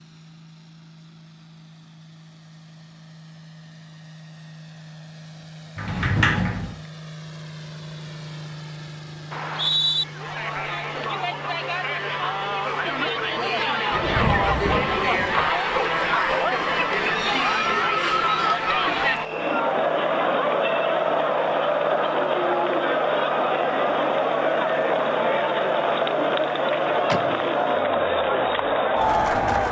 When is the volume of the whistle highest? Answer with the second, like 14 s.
10 s.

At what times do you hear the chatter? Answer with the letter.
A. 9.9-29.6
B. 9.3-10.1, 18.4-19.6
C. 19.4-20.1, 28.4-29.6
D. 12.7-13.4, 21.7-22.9
A.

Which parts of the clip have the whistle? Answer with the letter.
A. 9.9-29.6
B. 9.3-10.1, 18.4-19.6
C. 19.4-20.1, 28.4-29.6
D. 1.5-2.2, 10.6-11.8
B.